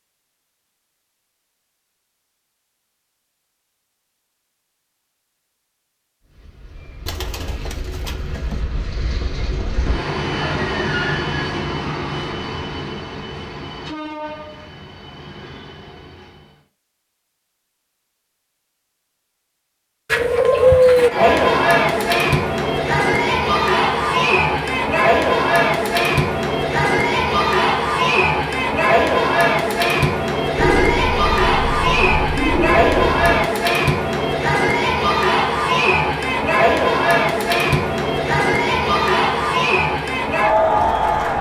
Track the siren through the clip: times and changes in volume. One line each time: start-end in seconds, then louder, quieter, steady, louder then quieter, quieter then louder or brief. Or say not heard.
not heard.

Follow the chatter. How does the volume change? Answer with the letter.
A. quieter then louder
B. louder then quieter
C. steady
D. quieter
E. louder
C.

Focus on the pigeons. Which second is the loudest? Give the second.
21 s.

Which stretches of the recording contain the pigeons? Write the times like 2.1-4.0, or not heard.
7.0-8.6, 20.1-21.1, 30.6-33.5.